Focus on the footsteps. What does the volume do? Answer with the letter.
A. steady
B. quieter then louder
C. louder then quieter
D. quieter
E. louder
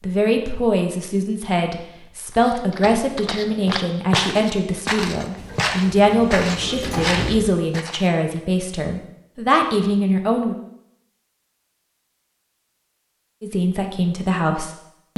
E.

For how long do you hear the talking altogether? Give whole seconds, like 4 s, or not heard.
12 s.